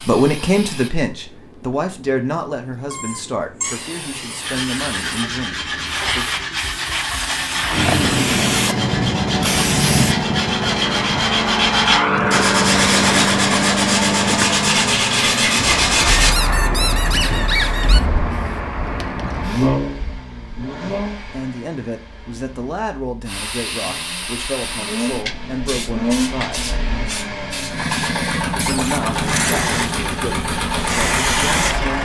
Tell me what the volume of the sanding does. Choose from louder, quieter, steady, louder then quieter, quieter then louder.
louder.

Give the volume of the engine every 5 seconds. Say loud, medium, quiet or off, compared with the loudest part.
off, off, off, loud, medium, loud, loud.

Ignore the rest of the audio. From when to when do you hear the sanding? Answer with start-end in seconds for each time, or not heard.
4.4-16.3.